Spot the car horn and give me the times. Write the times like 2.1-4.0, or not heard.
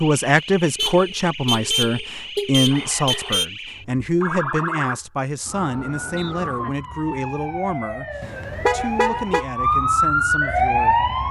0.8-3.5, 8.2-9.4.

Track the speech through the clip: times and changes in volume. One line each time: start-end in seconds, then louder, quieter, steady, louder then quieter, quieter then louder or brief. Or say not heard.
0.0-11.1 quieter.